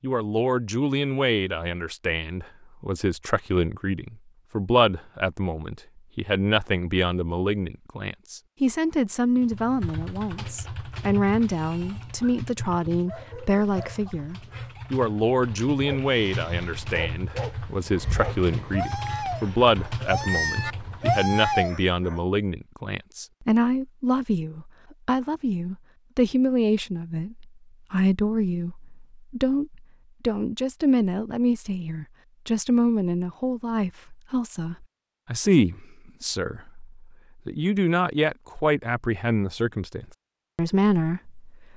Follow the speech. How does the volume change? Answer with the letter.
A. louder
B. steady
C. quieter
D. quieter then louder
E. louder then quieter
B.